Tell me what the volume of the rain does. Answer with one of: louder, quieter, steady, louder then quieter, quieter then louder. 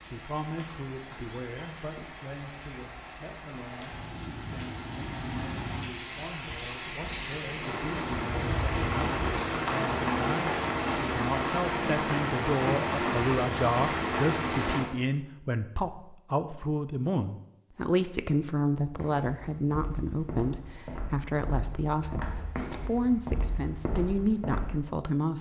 louder.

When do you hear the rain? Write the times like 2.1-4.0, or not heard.
0.0-14.8.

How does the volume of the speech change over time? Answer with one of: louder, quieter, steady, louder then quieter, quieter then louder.
louder.